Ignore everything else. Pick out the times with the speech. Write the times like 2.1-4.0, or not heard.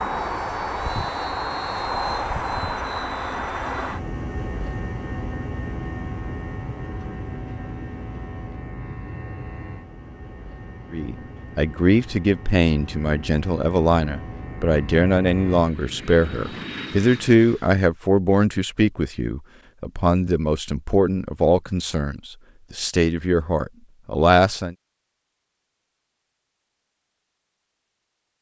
10.9-24.8.